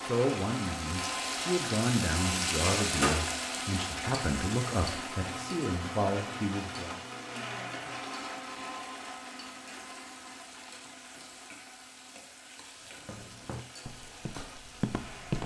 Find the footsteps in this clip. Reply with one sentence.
You can hear the footsteps from 12.8 to 15.4 s.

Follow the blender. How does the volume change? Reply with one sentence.
The loudness of the blender goes down.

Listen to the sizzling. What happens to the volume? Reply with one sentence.
The loudness of the sizzling goes down.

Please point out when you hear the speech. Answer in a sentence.
You can hear the speech from 0.0 to 7.0 s.